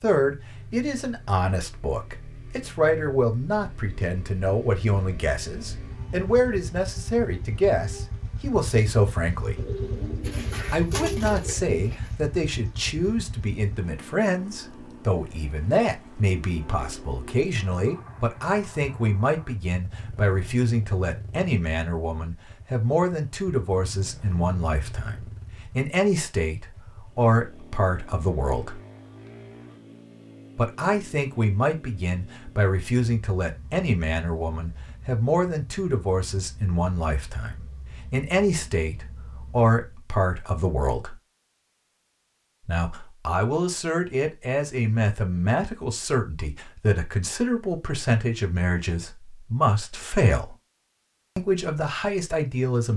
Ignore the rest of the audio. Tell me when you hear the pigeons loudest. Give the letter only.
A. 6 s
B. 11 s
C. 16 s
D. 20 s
B.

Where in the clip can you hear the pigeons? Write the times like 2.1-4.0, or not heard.
9.6-12.2.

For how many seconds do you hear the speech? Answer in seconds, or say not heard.
48 s.